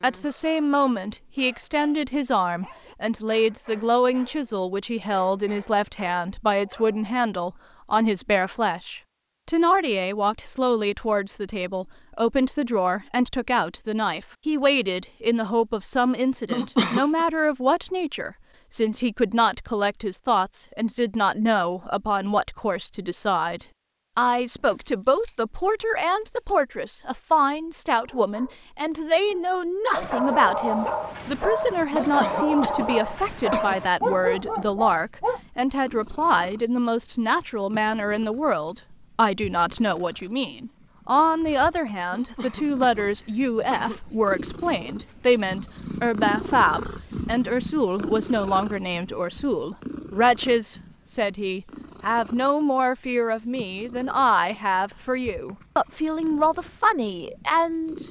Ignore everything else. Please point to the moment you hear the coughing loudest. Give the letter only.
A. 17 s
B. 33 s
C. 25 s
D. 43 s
A.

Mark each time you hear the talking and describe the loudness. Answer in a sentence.
You can hear the talking from 0.0 to 58.0 s, at a steady volume.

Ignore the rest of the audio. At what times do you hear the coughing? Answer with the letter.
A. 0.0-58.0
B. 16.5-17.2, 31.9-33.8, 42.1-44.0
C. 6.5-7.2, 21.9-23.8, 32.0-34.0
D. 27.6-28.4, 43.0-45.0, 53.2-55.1
B.